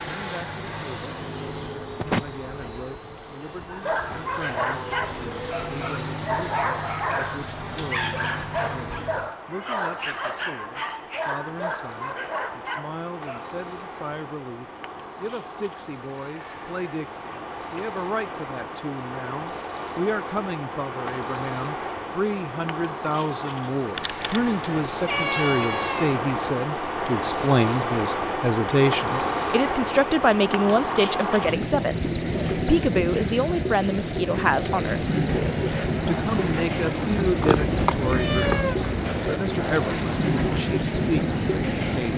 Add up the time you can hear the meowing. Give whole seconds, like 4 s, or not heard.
5 s.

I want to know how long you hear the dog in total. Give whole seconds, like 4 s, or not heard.
10 s.